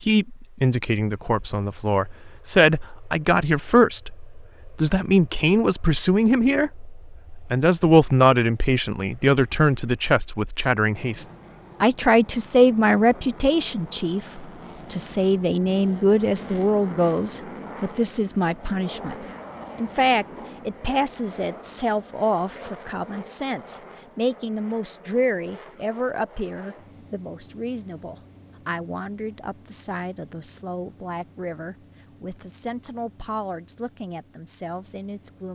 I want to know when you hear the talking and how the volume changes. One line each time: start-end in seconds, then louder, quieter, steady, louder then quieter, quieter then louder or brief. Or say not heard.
0.0-35.5 quieter.